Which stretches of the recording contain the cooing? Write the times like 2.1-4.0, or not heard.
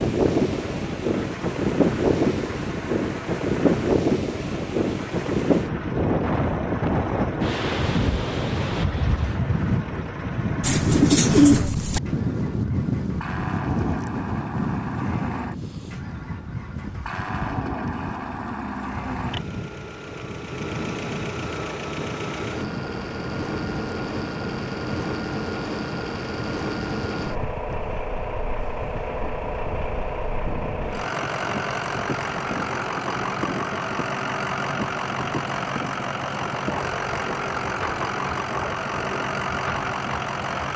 10.6-12.0.